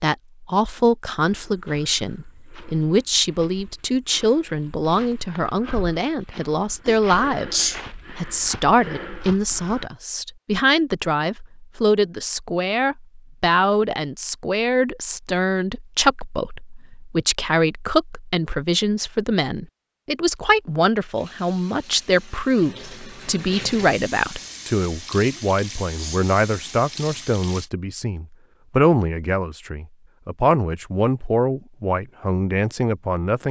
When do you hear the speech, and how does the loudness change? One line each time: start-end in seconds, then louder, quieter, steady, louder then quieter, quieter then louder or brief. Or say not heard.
0.0-33.4 steady.